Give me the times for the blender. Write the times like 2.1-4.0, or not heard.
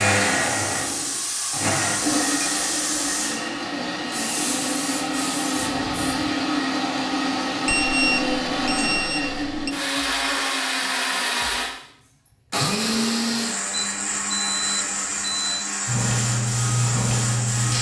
0.0-17.7.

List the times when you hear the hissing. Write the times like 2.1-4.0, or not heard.
0.0-6.3, 15.8-17.7.